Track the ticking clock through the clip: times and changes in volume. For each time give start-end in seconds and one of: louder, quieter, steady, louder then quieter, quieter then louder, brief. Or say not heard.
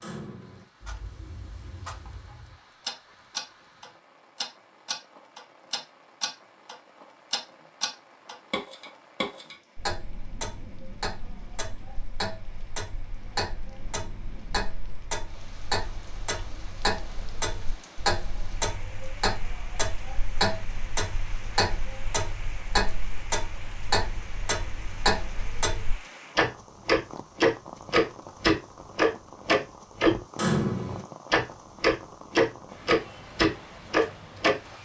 0.0-34.5 louder.